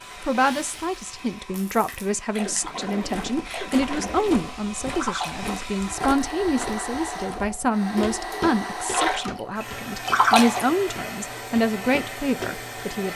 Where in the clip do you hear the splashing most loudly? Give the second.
10 s.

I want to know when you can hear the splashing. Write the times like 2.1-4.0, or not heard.
0.0-5.8, 8.0-10.7.